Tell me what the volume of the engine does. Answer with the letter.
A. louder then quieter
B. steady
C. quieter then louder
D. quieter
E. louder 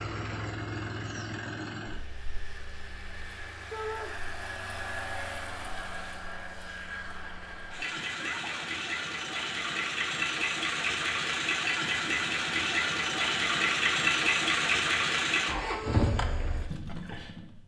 E.